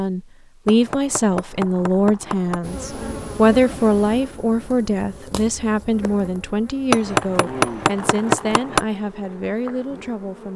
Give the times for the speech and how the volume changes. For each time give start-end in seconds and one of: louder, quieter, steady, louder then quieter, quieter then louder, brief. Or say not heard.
0.0-10.5 quieter.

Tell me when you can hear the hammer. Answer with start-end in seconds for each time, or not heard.
0.7-2.6, 6.9-8.8.